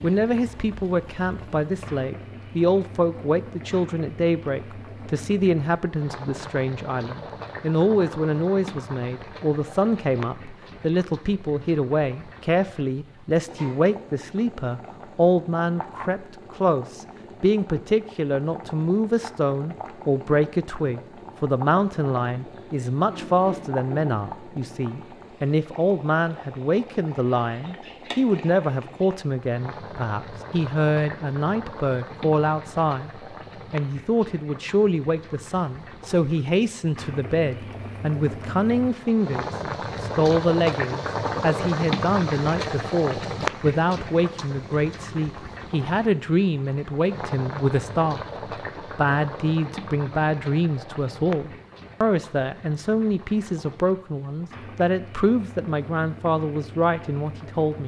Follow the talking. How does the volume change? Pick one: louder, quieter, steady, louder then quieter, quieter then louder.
steady.